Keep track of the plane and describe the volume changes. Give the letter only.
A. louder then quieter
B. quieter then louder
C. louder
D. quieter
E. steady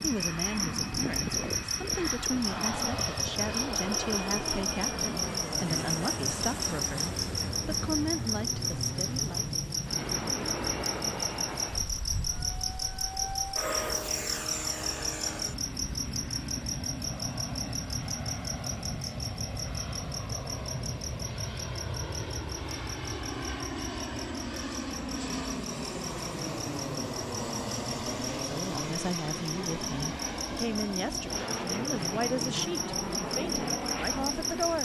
E.